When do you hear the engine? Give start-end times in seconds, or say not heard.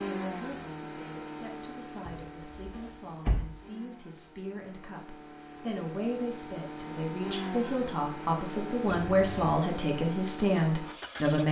0.0-11.4.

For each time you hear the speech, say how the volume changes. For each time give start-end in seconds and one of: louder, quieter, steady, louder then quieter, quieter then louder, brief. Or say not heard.
0.1-11.4 louder.